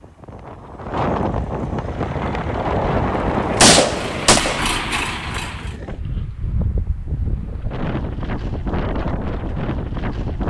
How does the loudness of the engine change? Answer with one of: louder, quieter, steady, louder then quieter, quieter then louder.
louder.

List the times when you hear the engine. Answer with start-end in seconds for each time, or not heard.
1.8-5.8.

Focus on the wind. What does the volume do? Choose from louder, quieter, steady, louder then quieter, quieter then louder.
quieter then louder.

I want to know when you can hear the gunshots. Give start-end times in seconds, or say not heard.
3.1-4.6.